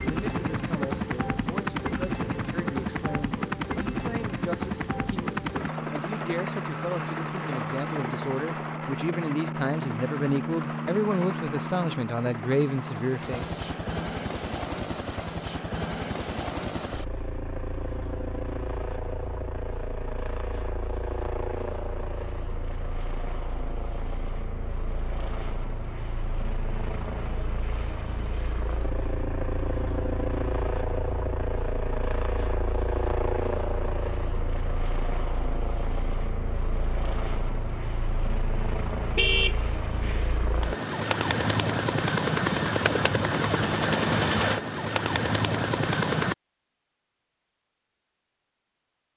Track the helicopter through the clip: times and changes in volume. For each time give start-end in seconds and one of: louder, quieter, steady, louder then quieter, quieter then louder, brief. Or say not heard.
0.0-46.4 quieter then louder.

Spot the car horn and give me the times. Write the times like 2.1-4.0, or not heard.
39.1-40.3.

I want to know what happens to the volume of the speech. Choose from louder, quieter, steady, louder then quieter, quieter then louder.
louder.